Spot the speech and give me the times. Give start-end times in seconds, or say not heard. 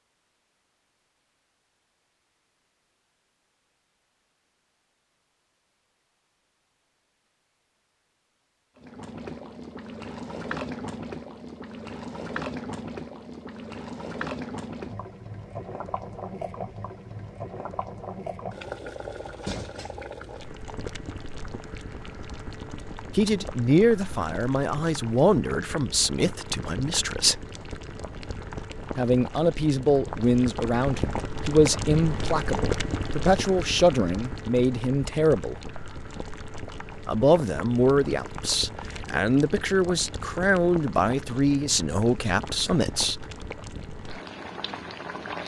23.1-27.4, 28.9-35.5, 37.0-43.4.